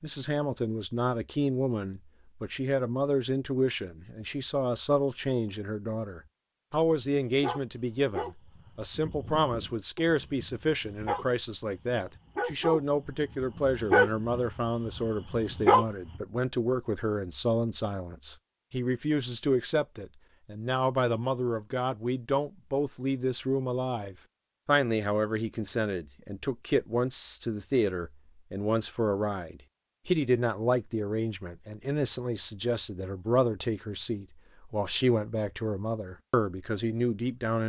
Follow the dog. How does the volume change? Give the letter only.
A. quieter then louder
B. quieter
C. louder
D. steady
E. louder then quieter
A.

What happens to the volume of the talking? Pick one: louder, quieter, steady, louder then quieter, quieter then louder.
steady.